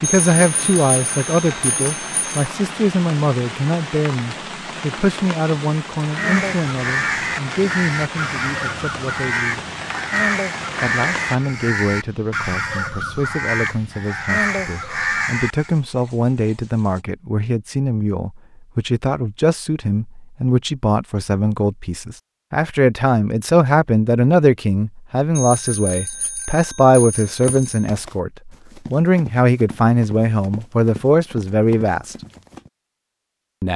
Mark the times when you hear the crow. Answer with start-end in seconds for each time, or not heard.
6.1-15.8.